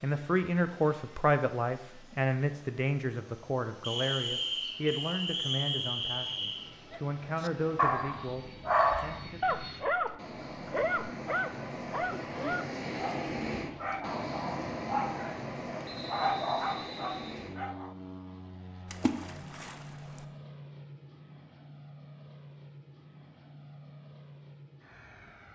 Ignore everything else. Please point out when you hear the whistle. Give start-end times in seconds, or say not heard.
3.8-6.6, 15.8-17.5.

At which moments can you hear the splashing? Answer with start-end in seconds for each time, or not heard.
18.9-20.2.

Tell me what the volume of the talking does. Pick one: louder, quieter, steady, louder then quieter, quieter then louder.
quieter.